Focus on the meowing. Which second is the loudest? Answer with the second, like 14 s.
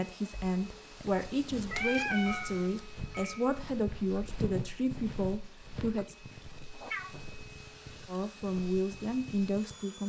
2 s.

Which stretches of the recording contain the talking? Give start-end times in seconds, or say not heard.
0.0-6.2, 8.1-10.0.